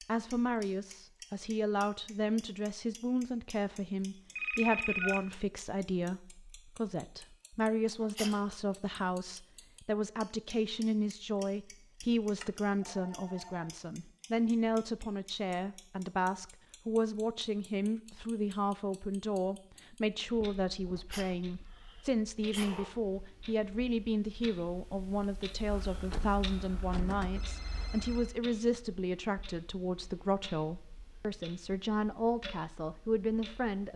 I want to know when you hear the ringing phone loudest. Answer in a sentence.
The loudest moment of the ringing phone is at 5 seconds.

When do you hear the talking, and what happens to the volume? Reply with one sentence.
You can hear the talking from 0.1 to 33.9 s, at a steady volume.